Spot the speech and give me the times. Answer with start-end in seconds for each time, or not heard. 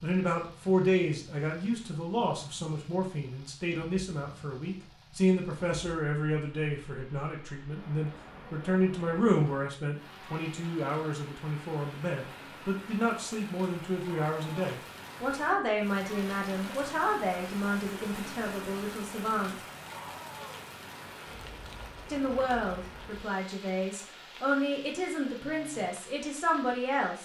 0.0-19.6, 22.1-27.2.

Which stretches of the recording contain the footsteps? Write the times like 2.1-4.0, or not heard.
not heard.